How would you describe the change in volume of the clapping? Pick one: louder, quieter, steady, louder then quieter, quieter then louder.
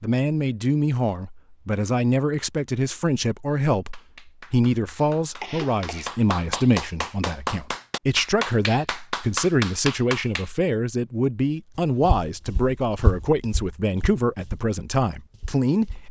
louder.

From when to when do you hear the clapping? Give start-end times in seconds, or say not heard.
3.9-10.5.